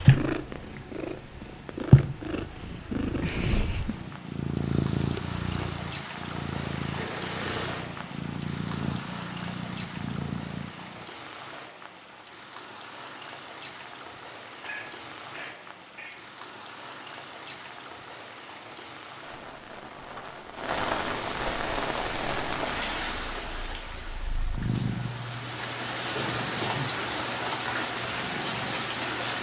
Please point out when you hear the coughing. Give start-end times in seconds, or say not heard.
7.0-7.8, 14.6-16.2, 26.1-26.9.